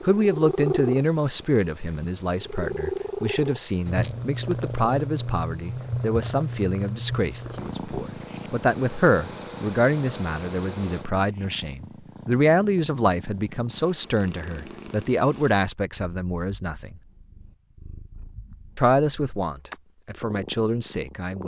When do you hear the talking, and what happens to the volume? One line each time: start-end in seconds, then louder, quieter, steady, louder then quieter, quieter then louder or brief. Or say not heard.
0.0-16.9 steady
18.8-21.4 brief.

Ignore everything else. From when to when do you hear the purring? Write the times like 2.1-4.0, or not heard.
0.0-21.4.